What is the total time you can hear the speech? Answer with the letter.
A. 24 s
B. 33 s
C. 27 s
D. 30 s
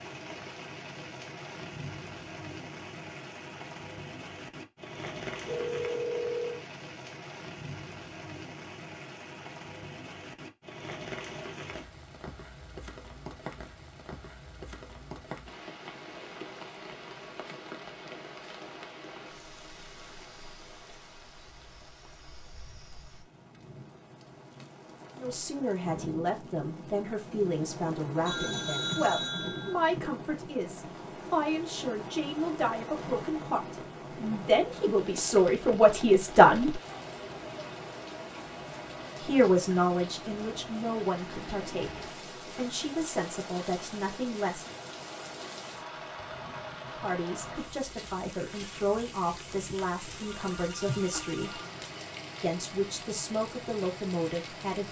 A.